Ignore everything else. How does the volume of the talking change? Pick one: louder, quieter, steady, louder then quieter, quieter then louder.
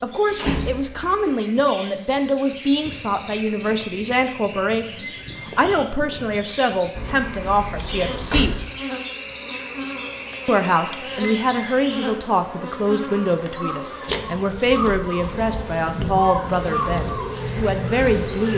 steady.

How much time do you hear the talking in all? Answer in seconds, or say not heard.
17 s.